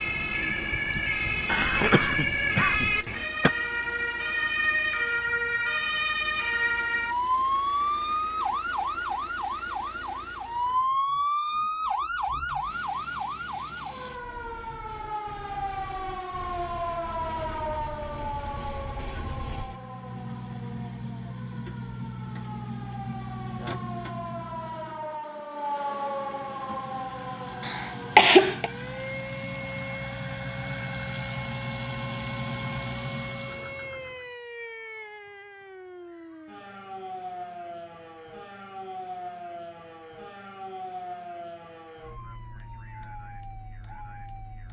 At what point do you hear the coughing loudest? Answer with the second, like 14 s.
28 s.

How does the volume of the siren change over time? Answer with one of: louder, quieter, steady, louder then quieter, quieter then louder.
quieter.